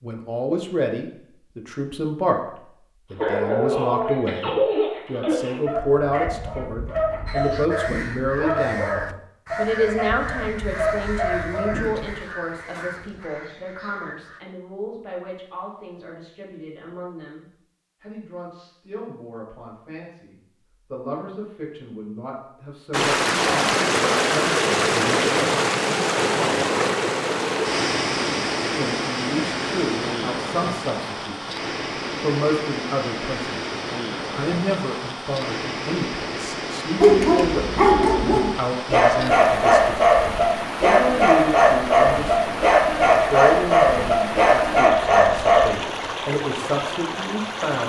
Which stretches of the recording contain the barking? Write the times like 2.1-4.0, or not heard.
3.1-12.2, 37.0-45.7.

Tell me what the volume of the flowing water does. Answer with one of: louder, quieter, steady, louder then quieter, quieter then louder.
quieter.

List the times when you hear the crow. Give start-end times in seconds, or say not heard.
7.2-14.4.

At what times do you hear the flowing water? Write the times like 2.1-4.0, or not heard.
22.9-47.8.